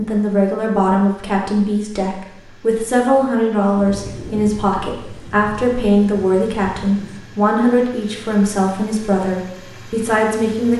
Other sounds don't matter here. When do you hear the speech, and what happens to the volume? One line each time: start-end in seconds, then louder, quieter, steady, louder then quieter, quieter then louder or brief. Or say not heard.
0.0-10.7 steady.